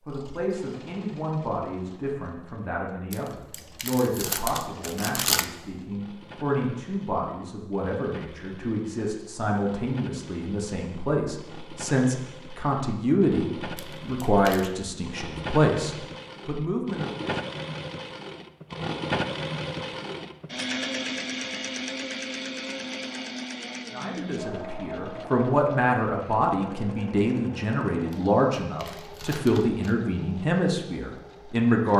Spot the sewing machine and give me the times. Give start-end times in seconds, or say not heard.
0.1-31.9.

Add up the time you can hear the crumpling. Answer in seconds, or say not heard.
5 s.